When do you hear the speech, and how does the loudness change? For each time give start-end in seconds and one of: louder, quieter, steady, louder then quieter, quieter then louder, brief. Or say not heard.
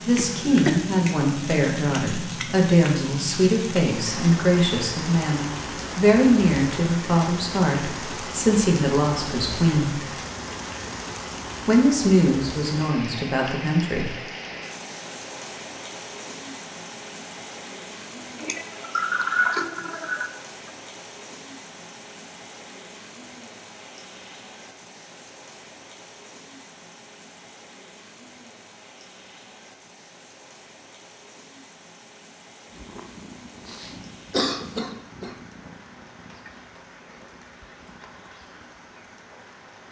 0.1-10.0 steady
11.7-14.2 brief.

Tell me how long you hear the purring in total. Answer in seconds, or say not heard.
7 s.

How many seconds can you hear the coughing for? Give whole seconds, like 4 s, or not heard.
5 s.